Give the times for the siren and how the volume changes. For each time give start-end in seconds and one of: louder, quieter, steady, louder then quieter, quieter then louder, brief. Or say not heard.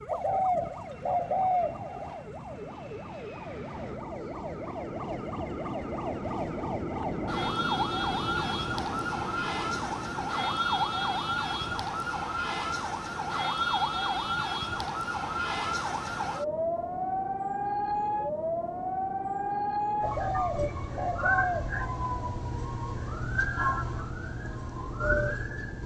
0.0-25.8 louder.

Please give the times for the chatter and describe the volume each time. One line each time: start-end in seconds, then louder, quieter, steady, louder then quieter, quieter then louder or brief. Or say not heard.
not heard.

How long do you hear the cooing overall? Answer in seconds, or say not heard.
5 s.